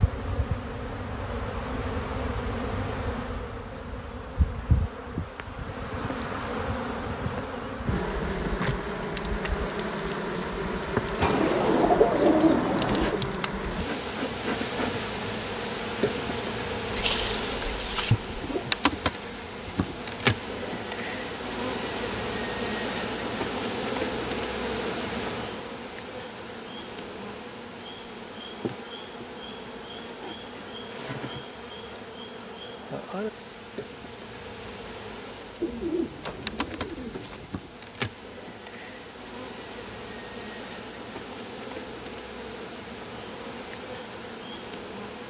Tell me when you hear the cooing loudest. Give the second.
12 s.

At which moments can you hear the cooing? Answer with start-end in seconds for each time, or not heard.
11.2-13.2, 16.9-18.6, 35.6-37.5.